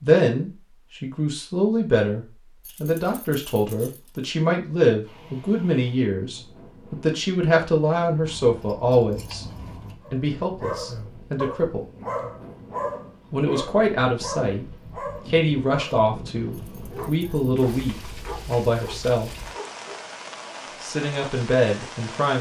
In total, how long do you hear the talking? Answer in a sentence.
You can hear the talking for 19 seconds altogether.